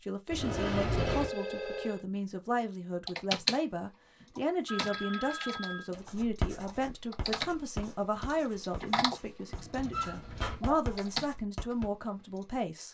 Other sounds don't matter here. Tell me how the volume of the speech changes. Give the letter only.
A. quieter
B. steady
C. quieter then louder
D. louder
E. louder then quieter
B.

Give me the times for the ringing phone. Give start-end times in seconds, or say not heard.
0.9-2.0, 4.7-5.9, 9.6-10.8.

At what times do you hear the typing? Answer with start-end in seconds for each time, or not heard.
3.0-3.6, 4.2-12.4.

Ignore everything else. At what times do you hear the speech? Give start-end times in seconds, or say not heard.
0.0-12.8.